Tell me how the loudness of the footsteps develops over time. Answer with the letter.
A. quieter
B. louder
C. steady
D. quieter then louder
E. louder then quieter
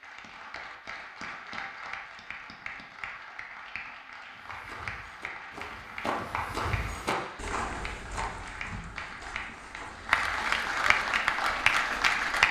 E.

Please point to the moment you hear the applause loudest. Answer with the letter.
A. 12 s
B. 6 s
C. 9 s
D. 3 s
A.